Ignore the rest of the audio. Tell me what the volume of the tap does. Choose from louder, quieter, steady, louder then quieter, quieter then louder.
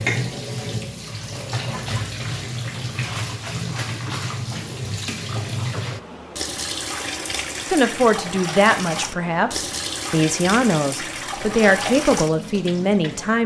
steady.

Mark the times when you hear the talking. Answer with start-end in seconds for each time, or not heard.
7.7-13.4.